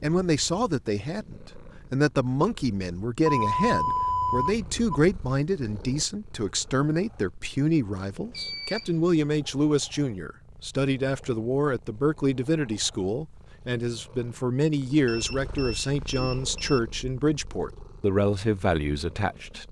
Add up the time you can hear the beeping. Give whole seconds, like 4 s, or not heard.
4 s.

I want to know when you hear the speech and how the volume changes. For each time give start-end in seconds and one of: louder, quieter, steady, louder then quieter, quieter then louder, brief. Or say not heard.
0.0-19.6 steady.